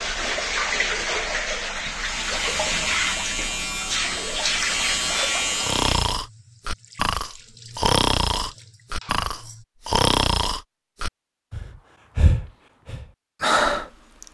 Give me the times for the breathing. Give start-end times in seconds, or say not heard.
5.6-14.2.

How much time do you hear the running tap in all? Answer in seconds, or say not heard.
10 s.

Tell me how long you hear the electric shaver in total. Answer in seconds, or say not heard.
4 s.